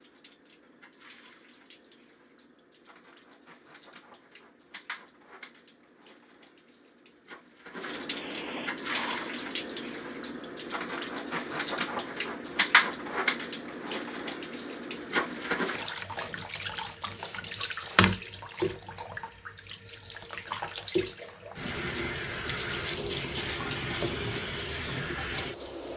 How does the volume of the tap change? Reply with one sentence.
The loudness of the tap goes up.